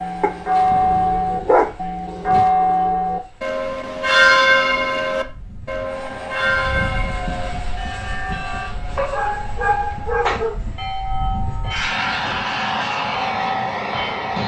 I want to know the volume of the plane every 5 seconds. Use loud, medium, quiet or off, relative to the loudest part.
quiet, medium, loud.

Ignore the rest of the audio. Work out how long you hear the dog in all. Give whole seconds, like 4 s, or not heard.
4 s.